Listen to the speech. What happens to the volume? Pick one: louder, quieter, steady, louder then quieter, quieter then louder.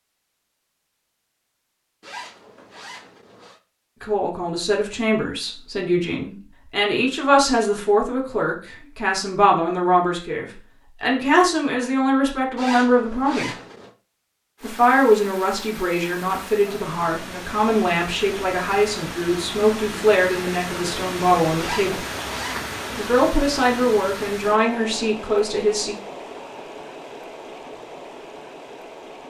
steady.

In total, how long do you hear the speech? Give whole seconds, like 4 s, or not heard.
20 s.